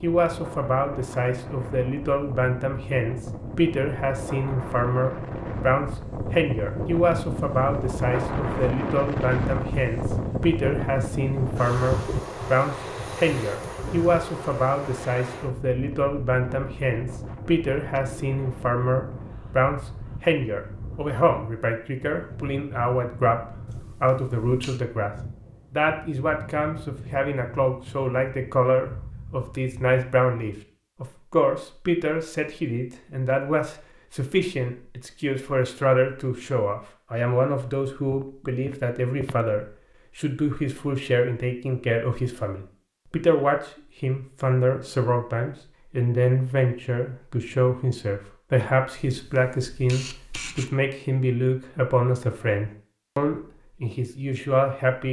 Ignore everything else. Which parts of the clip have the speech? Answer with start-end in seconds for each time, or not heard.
0.0-25.1, 25.7-55.0.